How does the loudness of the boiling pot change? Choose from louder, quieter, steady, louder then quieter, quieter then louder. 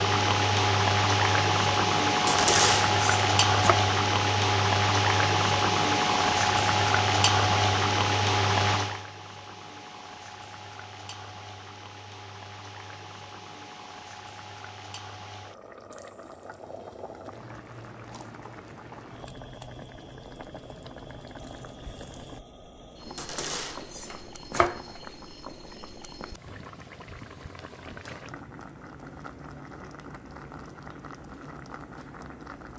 quieter.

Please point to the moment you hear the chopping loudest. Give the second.
3 s.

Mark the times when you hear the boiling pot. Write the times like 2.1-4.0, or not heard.
0.0-32.7.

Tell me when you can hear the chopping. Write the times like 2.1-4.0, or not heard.
2.2-3.8, 23.1-25.0.